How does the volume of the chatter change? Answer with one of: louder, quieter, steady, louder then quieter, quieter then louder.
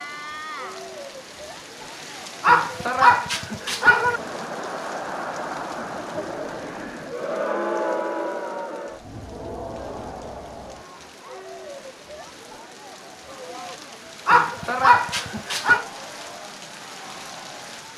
louder then quieter.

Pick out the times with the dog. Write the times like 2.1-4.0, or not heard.
2.4-4.2, 14.2-15.8.